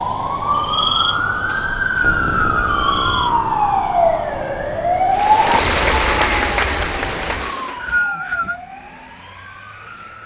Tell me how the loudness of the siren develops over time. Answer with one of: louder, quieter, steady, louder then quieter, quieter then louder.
quieter.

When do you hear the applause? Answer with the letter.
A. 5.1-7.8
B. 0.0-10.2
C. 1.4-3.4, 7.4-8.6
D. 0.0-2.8
A.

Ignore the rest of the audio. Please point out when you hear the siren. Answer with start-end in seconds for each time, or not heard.
0.0-10.2.